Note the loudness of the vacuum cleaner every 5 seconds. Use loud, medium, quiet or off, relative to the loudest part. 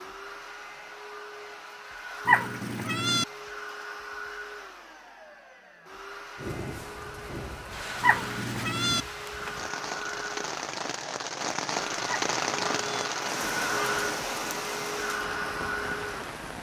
medium, medium, loud, loud.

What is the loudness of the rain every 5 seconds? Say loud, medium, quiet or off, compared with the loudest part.
off, medium, loud, medium.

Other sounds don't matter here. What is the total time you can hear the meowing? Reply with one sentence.
The meowing can be heard for 3 seconds in total.